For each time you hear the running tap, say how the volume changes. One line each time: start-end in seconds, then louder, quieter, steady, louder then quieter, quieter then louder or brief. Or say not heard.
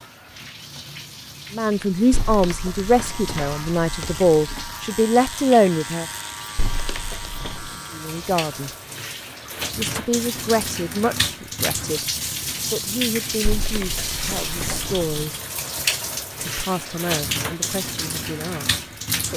0.0-19.3 louder.